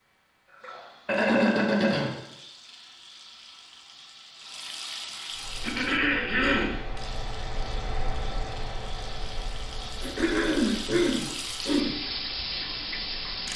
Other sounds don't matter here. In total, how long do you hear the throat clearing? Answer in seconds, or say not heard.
4 s.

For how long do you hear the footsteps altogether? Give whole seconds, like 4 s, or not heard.
not heard.